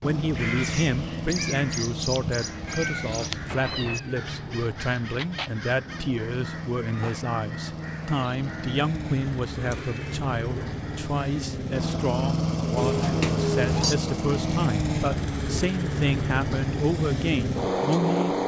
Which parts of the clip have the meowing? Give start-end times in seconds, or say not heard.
2.6-4.3, 9.7-10.8, 12.8-13.9.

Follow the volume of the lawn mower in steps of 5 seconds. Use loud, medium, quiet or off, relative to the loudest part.
medium, medium, loud, loud.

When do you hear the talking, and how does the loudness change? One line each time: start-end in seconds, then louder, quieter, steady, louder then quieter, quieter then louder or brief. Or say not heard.
0.0-18.4 steady.